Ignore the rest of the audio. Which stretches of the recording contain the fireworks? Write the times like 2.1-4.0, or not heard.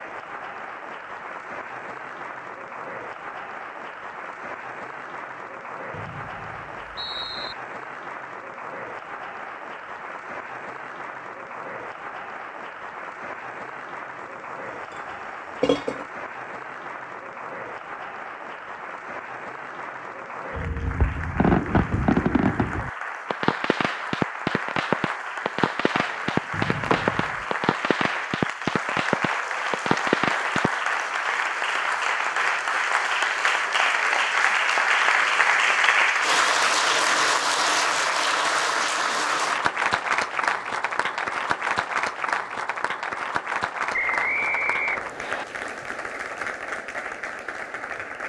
20.6-30.8.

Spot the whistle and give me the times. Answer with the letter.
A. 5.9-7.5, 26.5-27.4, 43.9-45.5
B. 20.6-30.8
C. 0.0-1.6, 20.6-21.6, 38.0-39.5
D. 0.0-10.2
A.